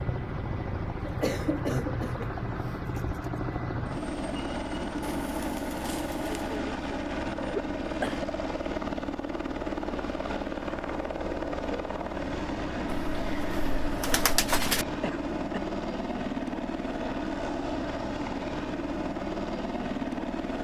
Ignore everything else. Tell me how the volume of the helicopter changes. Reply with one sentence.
The loudness of the helicopter stays about the same.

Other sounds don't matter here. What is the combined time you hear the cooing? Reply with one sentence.
The cooing can be heard for 3 seconds in total.